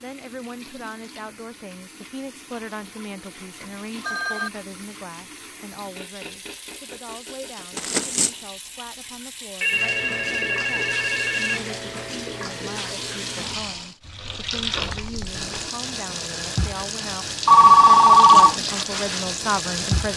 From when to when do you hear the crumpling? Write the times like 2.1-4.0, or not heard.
7.8-8.4, 14.8-15.7.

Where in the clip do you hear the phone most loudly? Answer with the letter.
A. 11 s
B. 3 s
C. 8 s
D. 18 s
D.